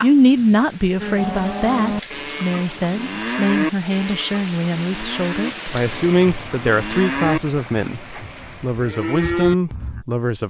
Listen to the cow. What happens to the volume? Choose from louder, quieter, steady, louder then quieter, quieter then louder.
quieter then louder.